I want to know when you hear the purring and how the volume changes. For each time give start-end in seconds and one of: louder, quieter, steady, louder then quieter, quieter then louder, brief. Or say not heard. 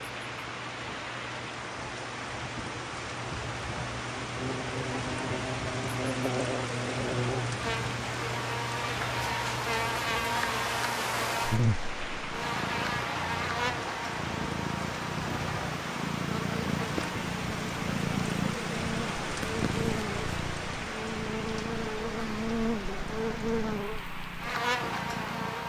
0.0-25.6 louder then quieter.